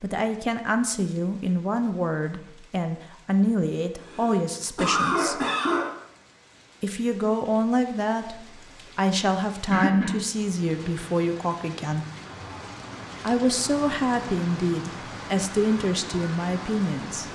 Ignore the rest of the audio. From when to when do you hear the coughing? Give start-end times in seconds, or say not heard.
4.0-5.8, 9.7-10.2.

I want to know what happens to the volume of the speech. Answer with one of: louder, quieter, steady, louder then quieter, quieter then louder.
steady.